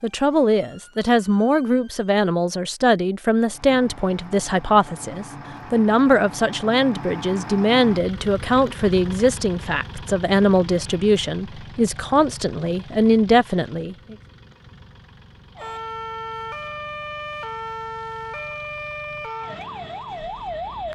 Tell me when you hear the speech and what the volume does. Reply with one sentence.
You can hear the speech from 0.0 to 14.2 s, at a steady volume.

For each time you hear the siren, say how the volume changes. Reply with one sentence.
The siren can be heard briefly from 0.0 to 2.1 s; and from 15.6 to 20.9 s, at a steady volume.